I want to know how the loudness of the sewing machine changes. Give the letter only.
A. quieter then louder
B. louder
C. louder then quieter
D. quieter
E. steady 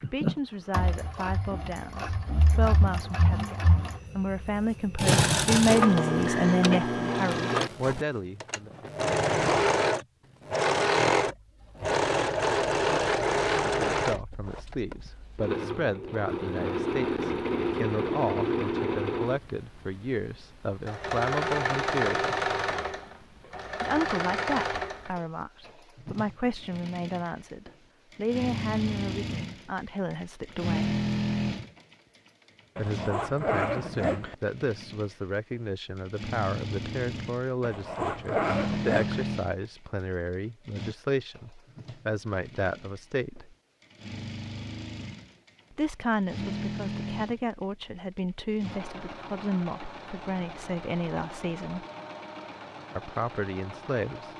D.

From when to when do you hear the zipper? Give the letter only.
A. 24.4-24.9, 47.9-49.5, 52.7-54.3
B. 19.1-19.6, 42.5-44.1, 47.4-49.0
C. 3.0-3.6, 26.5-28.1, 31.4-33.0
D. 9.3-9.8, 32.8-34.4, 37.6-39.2
D.